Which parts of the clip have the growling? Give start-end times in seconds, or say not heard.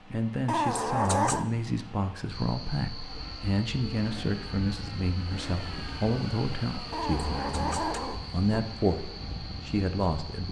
0.5-1.4, 6.9-8.4.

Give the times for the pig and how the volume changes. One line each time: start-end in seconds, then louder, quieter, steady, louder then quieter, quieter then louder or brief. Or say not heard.
not heard.